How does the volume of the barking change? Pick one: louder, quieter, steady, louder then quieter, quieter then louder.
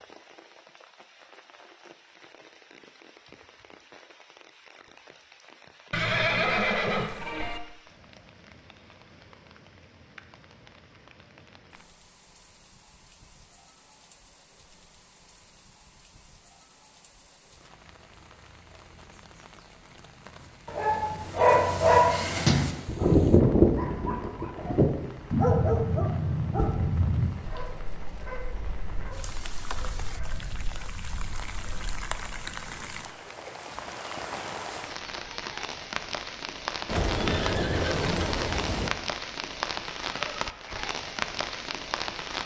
quieter.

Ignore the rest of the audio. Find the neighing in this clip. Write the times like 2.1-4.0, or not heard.
5.9-7.6, 36.9-38.9.